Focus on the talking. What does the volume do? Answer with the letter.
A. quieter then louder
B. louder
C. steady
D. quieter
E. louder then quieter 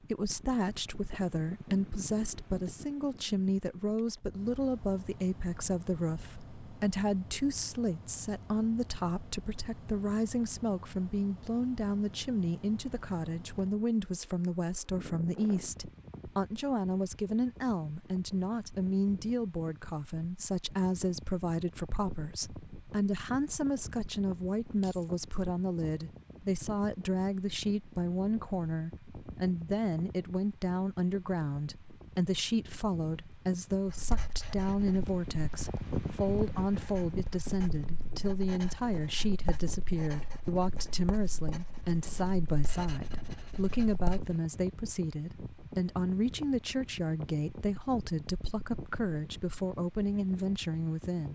C.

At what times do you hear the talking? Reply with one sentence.
You can hear the talking from 0.0 to 51.3 s.